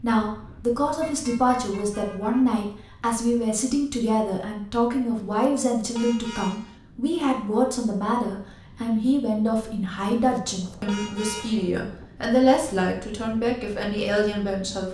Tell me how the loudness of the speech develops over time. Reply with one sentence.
The volume of the speech stays about the same.